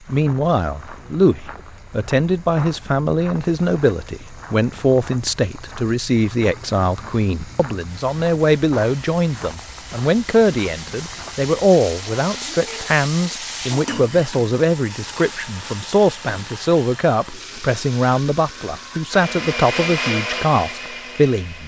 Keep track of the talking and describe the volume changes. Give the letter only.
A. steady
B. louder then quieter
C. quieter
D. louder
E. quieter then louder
A.